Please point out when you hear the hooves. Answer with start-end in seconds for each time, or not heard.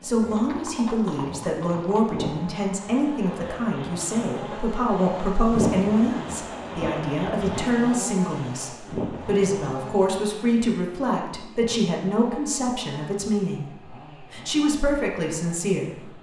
0.2-9.4.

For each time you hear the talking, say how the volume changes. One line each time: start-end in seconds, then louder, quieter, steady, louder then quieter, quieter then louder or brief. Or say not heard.
0.0-16.1 steady.